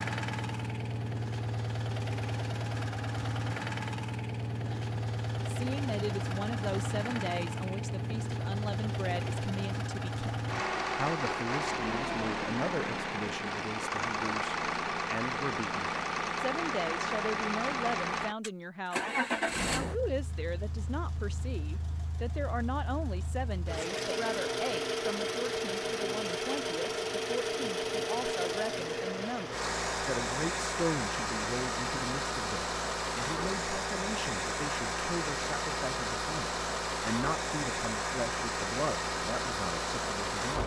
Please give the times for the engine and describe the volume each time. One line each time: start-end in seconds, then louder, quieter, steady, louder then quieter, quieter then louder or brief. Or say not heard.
0.0-40.6 steady.